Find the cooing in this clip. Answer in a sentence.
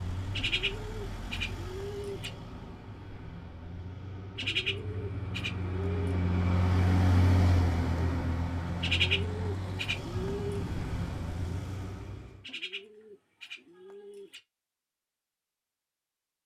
The cooing can be heard from 0.3 to 2.3 s, from 4.3 to 6.2 s, from 8.8 to 10.7 s and from 12.4 to 14.4 s.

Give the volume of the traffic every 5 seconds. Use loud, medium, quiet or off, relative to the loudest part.
medium, loud, medium, off.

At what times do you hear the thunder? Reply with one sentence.
You can hear the thunder from 10.1 to 11.7 s.